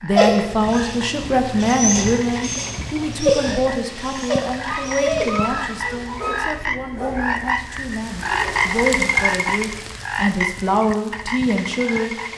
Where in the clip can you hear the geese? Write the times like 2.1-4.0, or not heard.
4.6-6.6.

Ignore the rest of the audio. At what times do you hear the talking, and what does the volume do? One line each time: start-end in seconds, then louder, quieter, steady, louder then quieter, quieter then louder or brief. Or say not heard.
0.0-12.2 quieter then louder.